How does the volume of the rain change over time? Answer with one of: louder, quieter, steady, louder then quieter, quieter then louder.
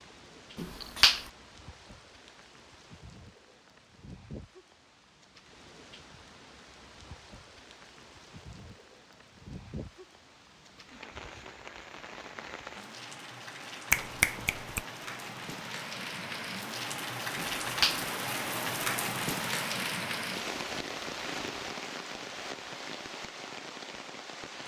louder.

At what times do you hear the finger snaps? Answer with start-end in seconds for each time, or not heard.
0.6-1.2, 13.9-14.8, 17.6-18.1.